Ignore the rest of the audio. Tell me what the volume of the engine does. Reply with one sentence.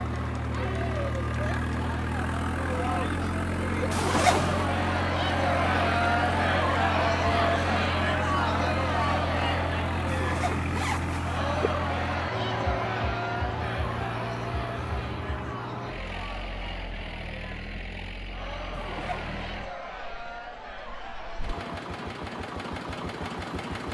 The volume of the engine goes down.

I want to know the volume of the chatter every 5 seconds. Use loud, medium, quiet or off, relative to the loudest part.
medium, loud, medium, quiet, quiet.